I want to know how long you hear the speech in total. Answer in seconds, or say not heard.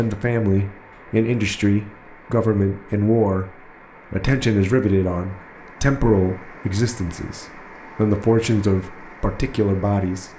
10 s.